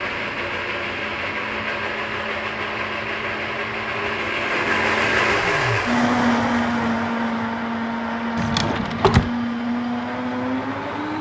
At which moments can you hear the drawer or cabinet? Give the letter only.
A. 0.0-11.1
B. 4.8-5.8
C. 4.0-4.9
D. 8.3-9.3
D.